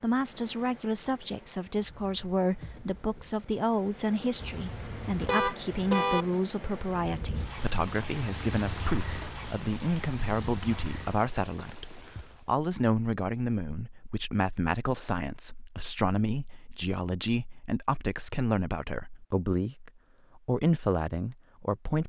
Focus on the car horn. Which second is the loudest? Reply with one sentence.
The volume of the car horn peaks at 6 seconds.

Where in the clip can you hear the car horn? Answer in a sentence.
The car horn can be heard from 4.4 to 6.2 s.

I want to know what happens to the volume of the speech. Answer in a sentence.
The volume of the speech stays about the same.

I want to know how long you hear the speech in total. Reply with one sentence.
The speech can be heard for 22 seconds in total.